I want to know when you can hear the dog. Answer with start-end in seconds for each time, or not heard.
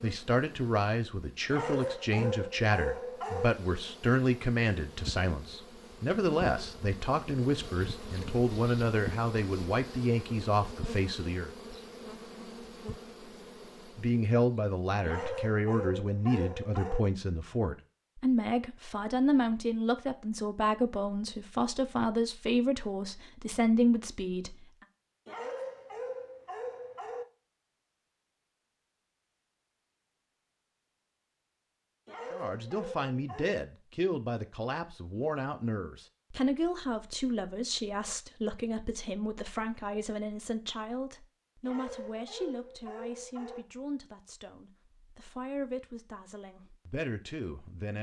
1.4-3.5, 15.0-17.1, 25.2-27.2, 32.0-33.6, 41.6-43.6.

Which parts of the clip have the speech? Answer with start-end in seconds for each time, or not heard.
0.0-11.5, 13.9-24.6, 32.3-47.9.